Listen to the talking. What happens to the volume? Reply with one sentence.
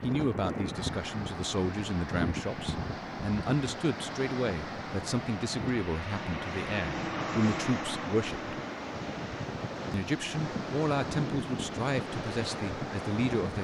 The volume of the talking stays about the same.